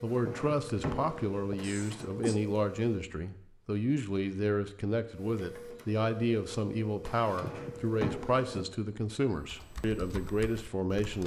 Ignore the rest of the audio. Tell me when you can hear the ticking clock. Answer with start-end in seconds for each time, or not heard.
not heard.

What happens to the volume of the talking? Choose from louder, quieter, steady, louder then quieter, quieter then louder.
steady.